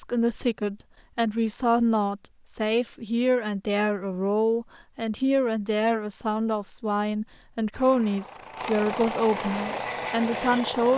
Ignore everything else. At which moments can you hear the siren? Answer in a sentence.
You can't hear the siren here.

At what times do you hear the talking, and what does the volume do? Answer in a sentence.
The talking can be heard from 0.0 to 10.9 s, at a steady volume.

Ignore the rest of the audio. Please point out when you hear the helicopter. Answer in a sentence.
You can hear the helicopter from 7.7 to 10.9 s.